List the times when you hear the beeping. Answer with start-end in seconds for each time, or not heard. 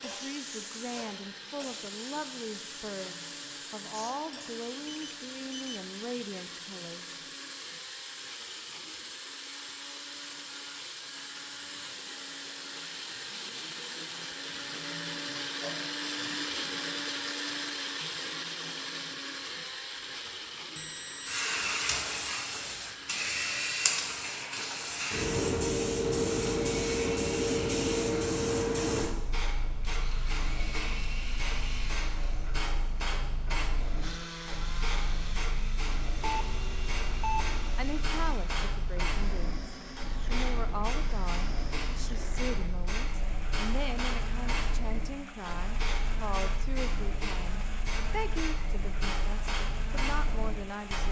4.8-5.8, 20.8-21.4, 36.2-37.7.